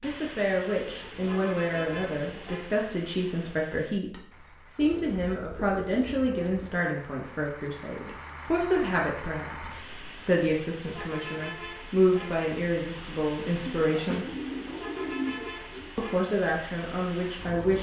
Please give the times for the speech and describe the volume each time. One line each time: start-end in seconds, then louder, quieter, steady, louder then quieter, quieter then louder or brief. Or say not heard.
0.0-14.2 steady
15.9-17.7 brief.